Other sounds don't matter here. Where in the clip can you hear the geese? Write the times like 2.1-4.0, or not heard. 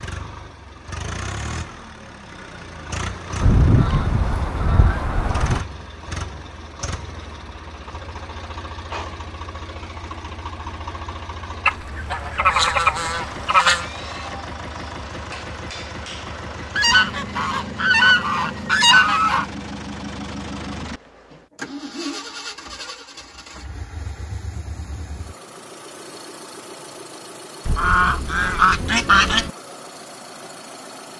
3.4-5.6, 11.7-13.8, 16.8-19.4, 27.6-29.5.